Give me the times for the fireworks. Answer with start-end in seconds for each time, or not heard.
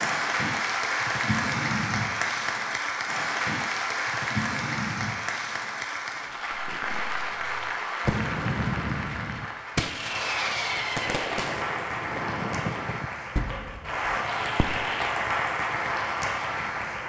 6.5-15.1.